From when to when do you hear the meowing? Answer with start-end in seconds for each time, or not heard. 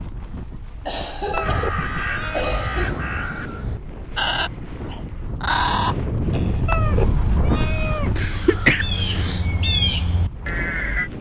1.3-2.5, 6.7-8.2.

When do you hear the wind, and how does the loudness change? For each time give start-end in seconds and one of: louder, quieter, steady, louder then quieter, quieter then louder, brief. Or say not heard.
0.0-11.1 louder then quieter.